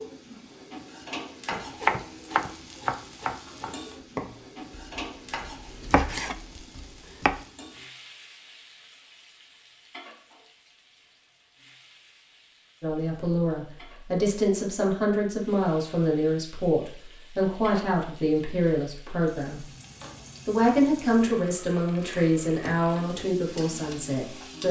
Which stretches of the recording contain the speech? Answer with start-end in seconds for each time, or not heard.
12.8-19.6, 20.4-24.6.